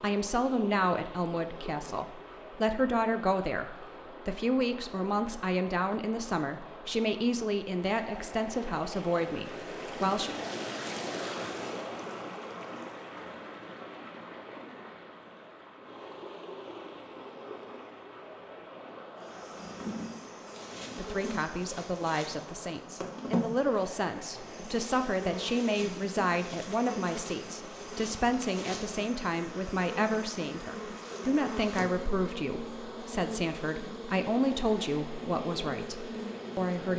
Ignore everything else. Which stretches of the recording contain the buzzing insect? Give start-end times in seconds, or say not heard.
19.1-36.9.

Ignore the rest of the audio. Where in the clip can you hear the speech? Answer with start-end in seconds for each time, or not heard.
0.0-10.3, 20.9-36.9.